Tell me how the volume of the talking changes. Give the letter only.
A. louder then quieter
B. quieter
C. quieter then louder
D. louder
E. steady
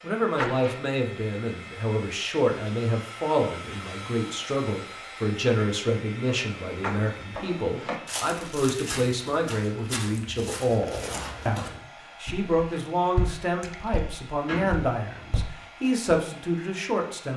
E.